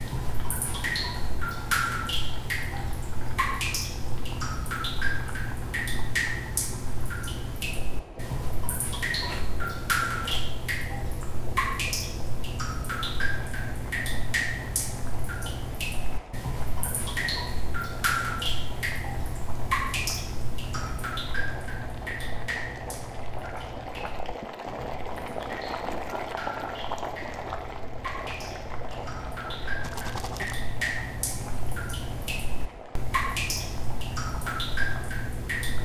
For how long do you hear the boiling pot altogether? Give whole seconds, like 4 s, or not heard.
36 s.